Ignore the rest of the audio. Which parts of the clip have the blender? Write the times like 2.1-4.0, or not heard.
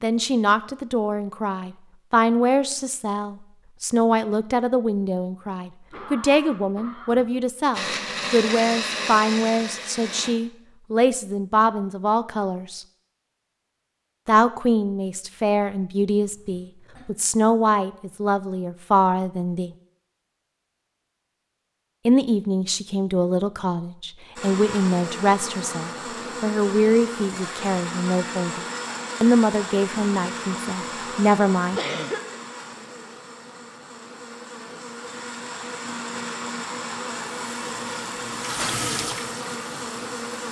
7.7-10.3, 24.4-40.4.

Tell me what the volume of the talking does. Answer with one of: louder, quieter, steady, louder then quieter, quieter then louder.
steady.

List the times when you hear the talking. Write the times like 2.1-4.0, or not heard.
0.0-12.8, 14.2-19.7, 22.1-31.8.